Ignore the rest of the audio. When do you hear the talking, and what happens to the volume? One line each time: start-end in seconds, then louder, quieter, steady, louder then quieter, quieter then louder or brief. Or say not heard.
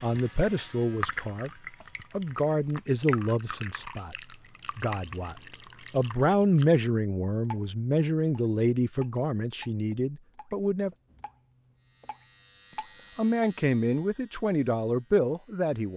0.0-1.5 brief
2.1-4.2 brief
4.8-10.9 louder then quieter
13.2-15.9 brief.